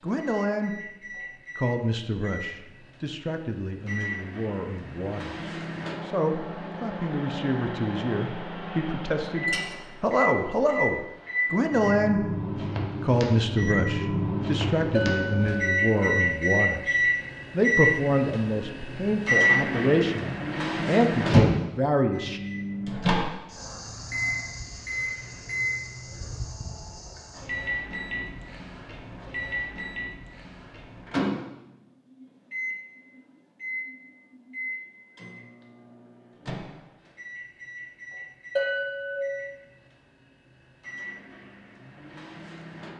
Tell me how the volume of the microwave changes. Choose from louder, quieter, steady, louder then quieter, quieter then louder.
louder then quieter.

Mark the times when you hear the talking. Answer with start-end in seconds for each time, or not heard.
0.0-0.8, 1.6-12.2, 13.0-22.4.